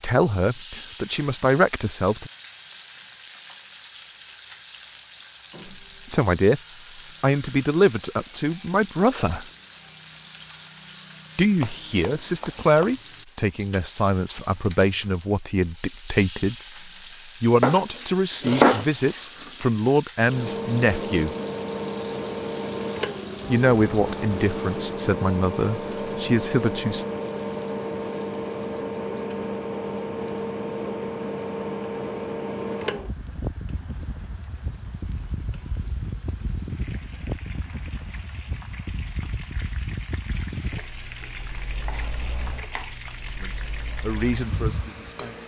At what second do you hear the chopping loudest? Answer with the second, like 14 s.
19 s.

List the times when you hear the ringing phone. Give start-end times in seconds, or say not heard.
not heard.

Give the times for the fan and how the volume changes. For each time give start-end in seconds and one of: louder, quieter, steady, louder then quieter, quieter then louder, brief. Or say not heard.
20.2-45.4 quieter.